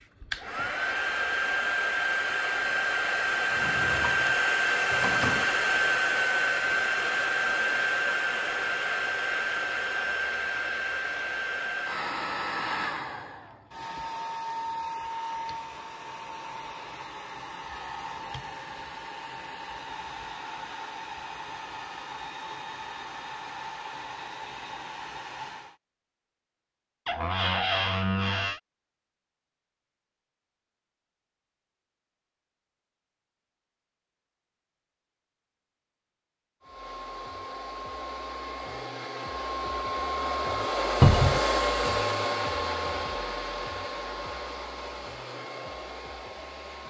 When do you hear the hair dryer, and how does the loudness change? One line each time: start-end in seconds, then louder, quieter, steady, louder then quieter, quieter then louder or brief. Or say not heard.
0.0-25.8 quieter
36.6-46.8 louder then quieter.